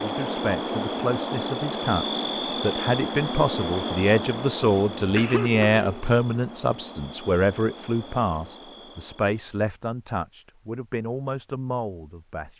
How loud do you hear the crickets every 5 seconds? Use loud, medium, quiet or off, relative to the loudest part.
loud, quiet, off.